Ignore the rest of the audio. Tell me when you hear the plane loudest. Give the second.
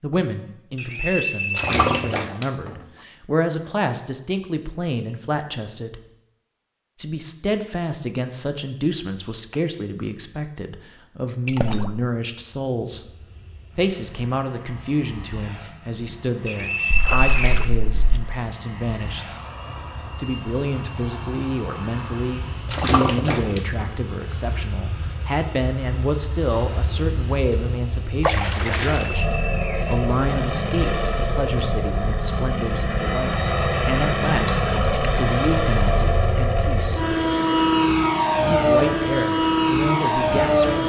38 s.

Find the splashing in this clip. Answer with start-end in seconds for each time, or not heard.
1.5-2.8, 11.4-12.0, 16.9-18.2, 22.6-23.9, 28.2-29.2, 34.4-35.1.